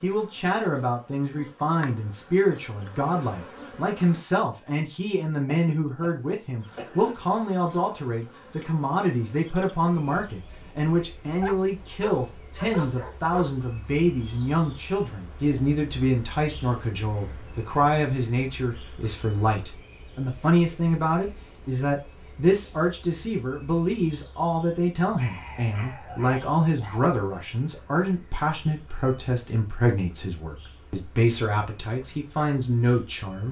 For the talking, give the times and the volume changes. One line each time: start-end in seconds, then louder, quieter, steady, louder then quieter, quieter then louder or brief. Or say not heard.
0.0-33.4 steady.